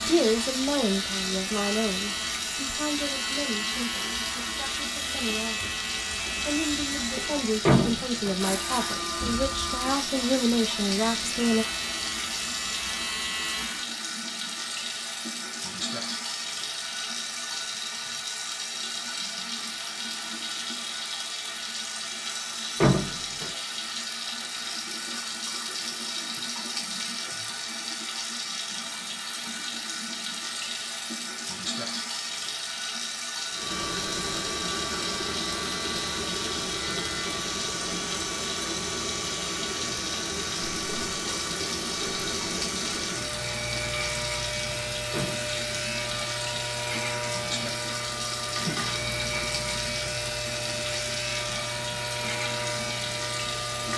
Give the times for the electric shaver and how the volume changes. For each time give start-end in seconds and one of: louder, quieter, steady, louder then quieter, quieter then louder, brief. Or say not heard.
0.0-13.9 steady
33.5-53.9 steady.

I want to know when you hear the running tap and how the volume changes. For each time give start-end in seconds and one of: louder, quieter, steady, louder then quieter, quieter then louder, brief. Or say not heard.
0.0-53.9 steady.